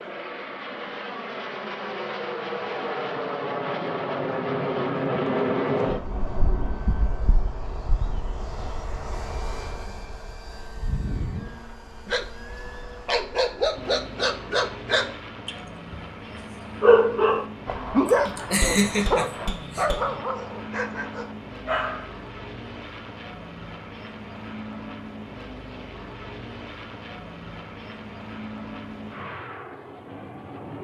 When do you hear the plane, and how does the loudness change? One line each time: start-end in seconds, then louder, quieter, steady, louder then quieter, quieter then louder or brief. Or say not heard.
0.0-30.7 quieter.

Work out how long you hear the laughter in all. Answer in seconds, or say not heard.
2 s.